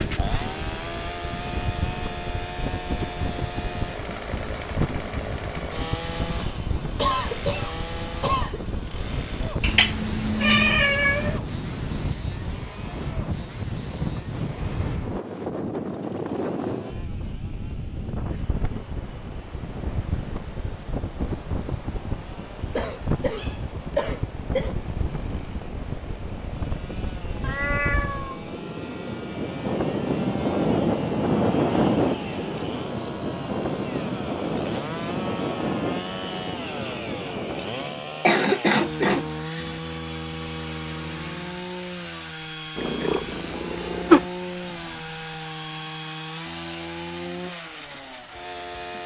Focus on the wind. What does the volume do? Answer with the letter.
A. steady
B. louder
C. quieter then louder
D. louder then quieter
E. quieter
B.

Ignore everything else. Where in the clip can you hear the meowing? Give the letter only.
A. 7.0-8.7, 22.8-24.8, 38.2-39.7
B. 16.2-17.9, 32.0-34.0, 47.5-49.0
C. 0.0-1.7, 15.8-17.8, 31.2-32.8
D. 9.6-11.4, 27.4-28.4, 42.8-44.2
D.